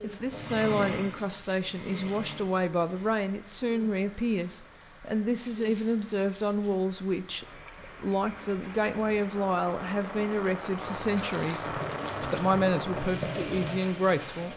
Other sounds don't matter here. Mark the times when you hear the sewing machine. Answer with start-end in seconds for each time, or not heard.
0.0-3.2, 9.9-14.5.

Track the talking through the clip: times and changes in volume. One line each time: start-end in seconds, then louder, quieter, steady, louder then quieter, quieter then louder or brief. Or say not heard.
0.0-14.5 steady.